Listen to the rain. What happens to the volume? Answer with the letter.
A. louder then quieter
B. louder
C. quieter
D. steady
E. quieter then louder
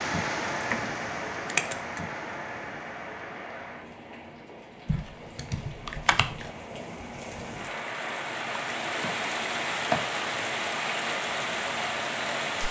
E.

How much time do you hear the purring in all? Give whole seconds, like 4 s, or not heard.
not heard.